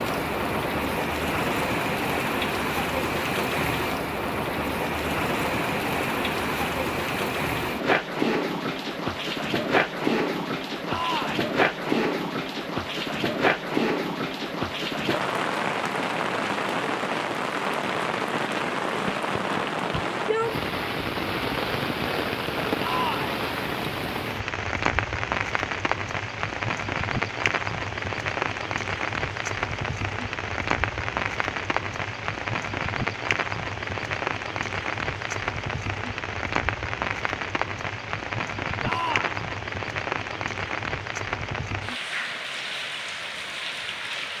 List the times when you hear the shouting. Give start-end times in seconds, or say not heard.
10.8-11.4, 22.8-23.4, 38.8-39.5.